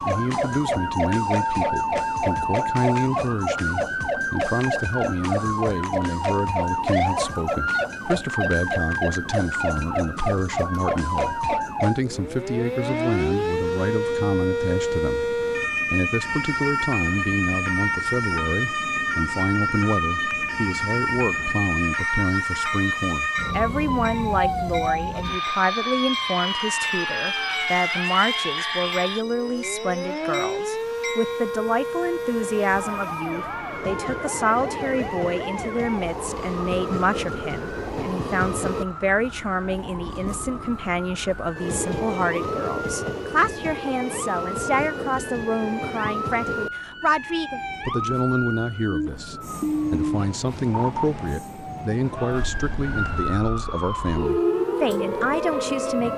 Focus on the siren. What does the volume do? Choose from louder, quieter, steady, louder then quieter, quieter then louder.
quieter then louder.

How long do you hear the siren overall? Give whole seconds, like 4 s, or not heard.
56 s.